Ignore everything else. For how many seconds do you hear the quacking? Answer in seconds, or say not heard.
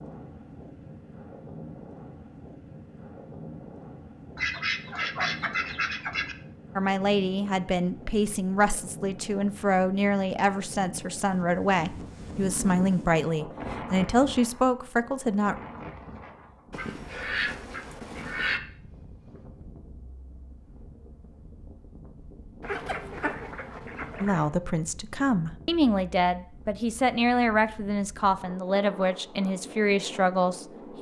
6 s.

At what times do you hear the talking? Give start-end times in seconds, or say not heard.
6.8-15.6, 24.2-30.9.